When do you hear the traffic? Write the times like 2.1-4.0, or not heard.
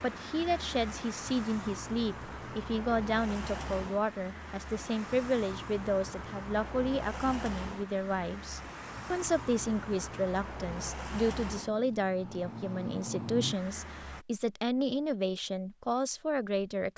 0.0-14.2.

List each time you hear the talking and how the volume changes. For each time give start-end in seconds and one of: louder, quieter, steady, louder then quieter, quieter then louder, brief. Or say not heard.
0.0-16.9 steady.